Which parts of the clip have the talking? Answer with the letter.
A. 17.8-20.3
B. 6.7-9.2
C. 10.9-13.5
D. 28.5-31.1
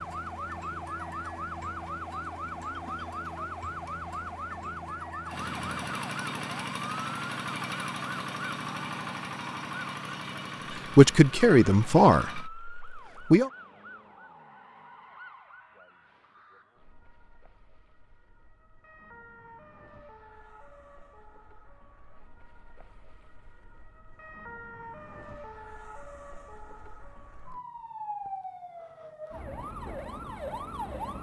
C.